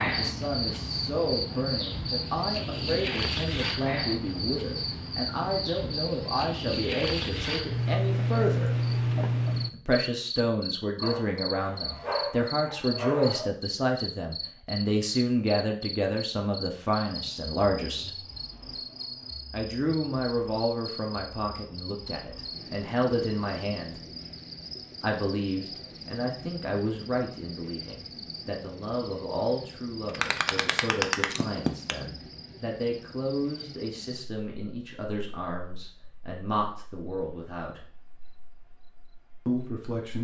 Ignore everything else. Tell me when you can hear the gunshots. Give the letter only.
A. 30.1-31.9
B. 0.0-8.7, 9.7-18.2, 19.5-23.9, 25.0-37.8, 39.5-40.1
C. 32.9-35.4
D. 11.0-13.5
A.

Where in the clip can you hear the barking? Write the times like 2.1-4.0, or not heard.
11.0-13.5.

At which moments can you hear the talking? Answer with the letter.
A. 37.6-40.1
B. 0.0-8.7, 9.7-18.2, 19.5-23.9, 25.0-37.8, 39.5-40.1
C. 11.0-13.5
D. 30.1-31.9
B.